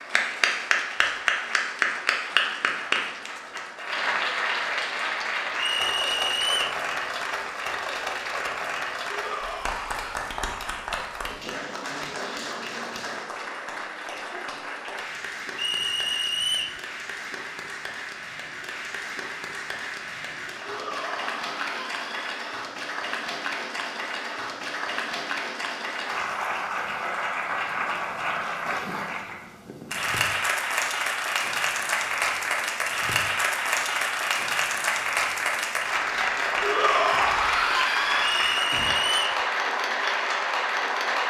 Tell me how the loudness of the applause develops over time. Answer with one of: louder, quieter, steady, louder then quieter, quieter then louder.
quieter then louder.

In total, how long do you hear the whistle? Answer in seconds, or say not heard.
4 s.